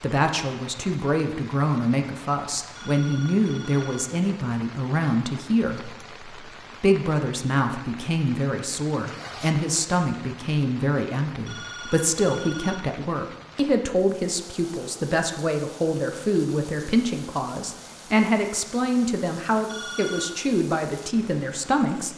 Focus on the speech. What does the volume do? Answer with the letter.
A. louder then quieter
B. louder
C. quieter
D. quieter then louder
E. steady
E.